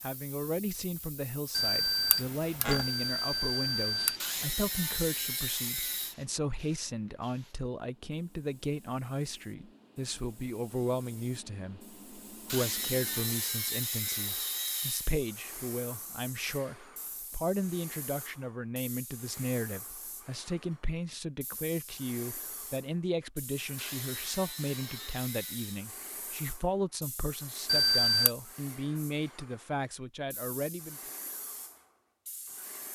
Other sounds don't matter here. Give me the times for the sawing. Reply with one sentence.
The sawing can be heard from 4.2 to 6.2 s, from 12.4 to 15.2 s and from 23.8 to 25.8 s.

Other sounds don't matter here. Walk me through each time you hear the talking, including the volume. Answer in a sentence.
You can hear the talking from 0.0 to 31.0 s, at a steady volume.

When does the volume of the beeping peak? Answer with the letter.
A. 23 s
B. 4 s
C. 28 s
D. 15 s
C.